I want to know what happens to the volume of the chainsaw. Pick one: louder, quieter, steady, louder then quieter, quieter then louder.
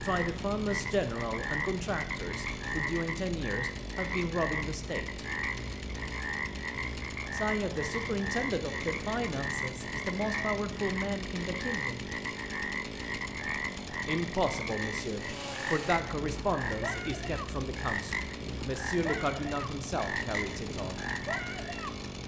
steady.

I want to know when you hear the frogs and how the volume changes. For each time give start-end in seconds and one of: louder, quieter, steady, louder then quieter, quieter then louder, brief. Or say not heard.
0.0-21.9 steady.